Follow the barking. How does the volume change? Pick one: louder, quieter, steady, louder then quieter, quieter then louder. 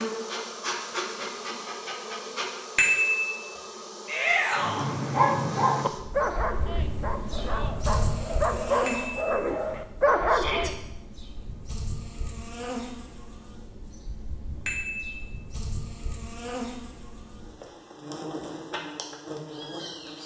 quieter then louder.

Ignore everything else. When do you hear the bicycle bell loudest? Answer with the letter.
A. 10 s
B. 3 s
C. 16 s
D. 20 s
B.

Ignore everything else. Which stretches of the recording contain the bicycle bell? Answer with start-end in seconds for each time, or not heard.
2.8-3.3, 8.8-9.2, 14.7-15.2.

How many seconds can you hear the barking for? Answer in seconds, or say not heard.
6 s.